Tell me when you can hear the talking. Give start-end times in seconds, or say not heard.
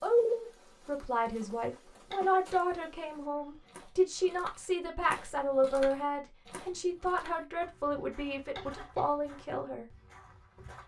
0.0-9.8.